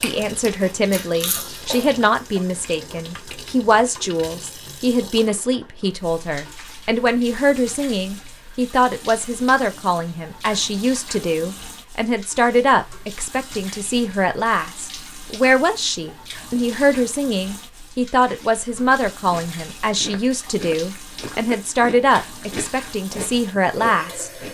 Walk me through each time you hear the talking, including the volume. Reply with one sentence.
You can hear the talking from 0.0 to 24.3 s, at a steady volume.